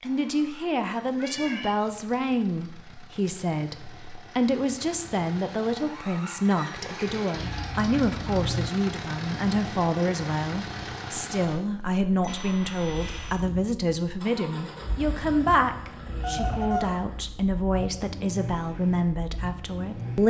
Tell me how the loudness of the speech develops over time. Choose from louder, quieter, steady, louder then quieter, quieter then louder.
steady.